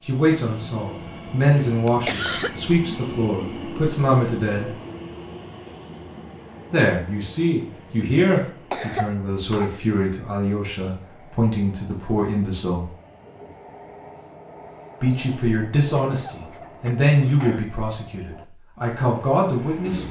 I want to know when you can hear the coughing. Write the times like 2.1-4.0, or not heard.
1.9-2.5, 8.7-9.7, 16.1-17.6.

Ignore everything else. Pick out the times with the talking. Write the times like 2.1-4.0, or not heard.
0.0-4.7, 6.7-12.9, 15.0-20.0.